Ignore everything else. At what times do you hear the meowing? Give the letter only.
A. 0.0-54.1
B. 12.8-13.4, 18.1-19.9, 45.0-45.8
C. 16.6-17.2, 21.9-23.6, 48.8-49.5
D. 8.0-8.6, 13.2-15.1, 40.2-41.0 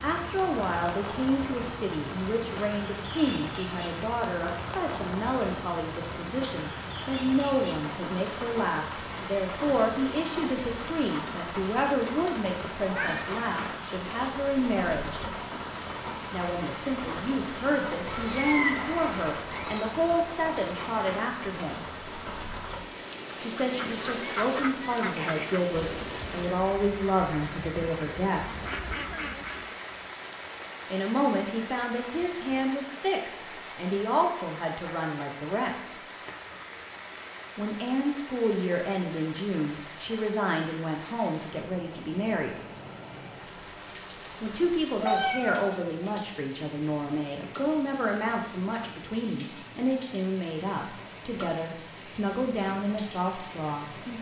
B.